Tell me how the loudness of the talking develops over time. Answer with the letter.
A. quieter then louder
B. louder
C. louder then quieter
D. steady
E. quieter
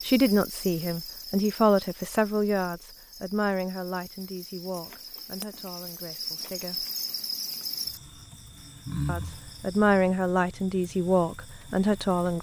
A.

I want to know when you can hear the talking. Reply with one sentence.
You can hear the talking from 0.0 to 6.8 s and from 9.1 to 12.3 s.